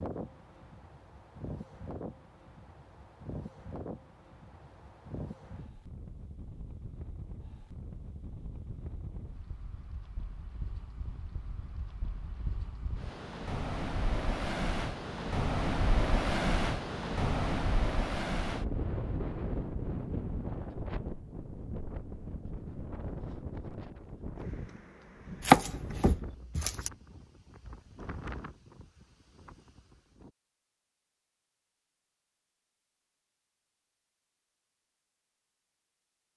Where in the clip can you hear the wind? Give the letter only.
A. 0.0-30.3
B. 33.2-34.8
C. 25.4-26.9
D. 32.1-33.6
A.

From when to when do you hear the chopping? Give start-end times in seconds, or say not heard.
25.4-26.9.